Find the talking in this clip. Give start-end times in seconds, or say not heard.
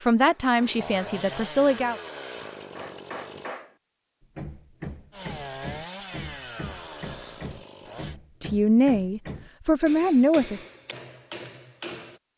0.0-2.0, 8.4-10.6.